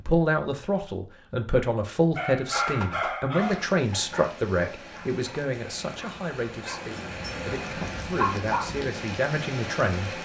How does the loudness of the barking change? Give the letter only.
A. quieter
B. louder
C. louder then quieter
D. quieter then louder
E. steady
D.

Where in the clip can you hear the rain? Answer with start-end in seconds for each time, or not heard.
3.4-10.2.